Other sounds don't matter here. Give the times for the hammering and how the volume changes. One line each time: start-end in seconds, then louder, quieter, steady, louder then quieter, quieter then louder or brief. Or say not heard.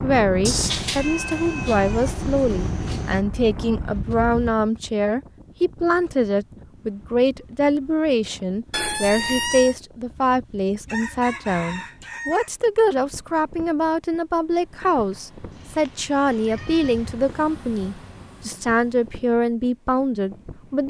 not heard.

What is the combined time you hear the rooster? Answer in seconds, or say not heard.
2 s.